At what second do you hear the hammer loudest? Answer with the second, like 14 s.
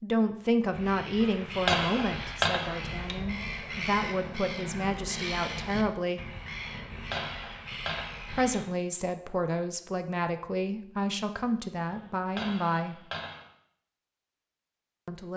2 s.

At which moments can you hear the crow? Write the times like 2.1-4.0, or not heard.
0.7-8.7.